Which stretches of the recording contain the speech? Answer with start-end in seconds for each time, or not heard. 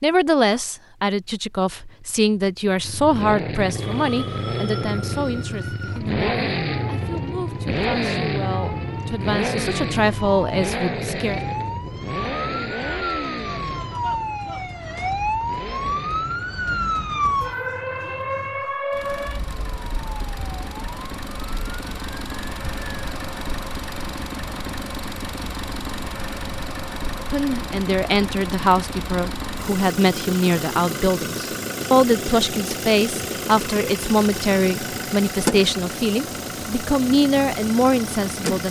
0.0-11.4, 27.3-38.6.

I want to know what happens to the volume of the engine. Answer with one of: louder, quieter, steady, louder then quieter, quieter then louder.
quieter then louder.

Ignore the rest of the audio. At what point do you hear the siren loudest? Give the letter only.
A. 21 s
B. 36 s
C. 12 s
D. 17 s
D.